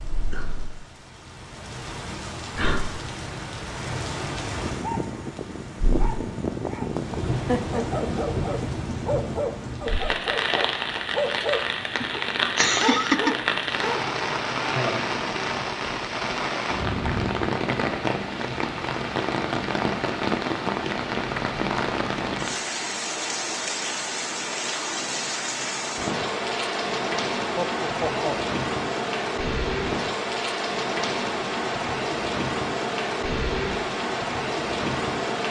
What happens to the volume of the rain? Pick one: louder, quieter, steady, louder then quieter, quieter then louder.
louder.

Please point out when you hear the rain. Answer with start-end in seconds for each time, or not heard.
0.0-35.4.